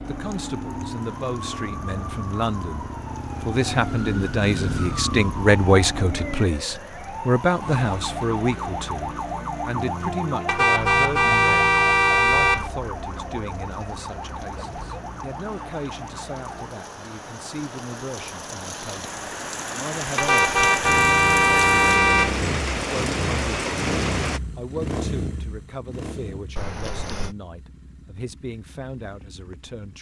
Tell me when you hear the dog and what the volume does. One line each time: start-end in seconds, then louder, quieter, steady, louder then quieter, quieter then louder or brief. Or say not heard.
not heard.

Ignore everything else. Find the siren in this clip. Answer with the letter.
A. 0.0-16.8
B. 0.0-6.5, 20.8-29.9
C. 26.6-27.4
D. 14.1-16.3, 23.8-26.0
A.